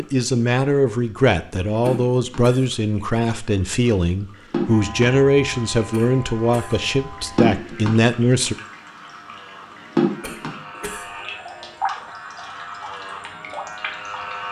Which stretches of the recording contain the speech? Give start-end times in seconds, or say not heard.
0.0-8.6.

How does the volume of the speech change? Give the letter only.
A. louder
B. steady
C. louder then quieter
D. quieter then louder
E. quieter
B.